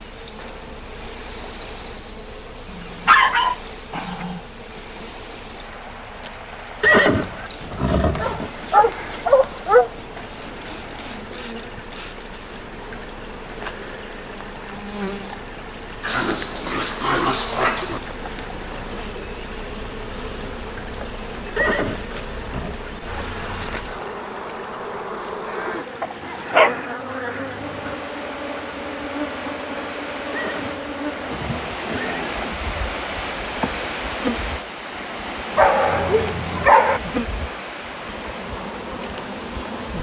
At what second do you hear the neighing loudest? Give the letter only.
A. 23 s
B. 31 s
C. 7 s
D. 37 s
C.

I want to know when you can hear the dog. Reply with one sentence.
You can hear the dog from 3.0 to 4.4 s, from 8.2 to 9.9 s, from 16.0 to 18.0 s, from 26.0 to 27.9 s and from 35.5 to 37.0 s.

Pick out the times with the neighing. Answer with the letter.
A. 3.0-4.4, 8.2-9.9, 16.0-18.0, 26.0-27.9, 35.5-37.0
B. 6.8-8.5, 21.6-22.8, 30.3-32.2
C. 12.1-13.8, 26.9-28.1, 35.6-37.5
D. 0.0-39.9
B.